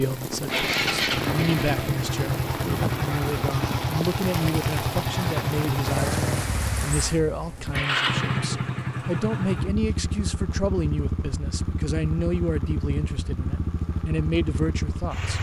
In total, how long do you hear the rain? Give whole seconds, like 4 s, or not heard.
15 s.